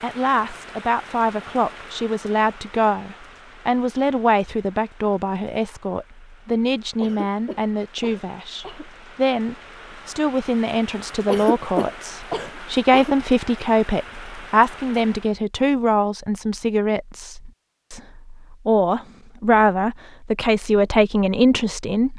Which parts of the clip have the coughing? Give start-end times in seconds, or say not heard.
7.0-8.8, 11.2-13.2.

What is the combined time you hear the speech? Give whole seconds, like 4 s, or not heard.
22 s.